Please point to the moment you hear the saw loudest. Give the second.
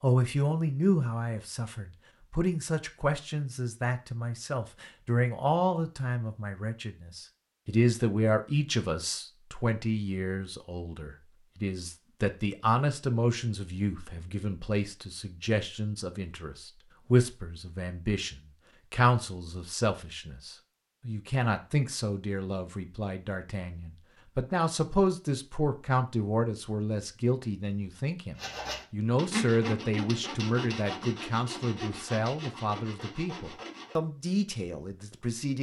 30 s.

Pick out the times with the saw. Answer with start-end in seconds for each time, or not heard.
28.4-34.0.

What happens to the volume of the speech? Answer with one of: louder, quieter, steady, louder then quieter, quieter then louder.
steady.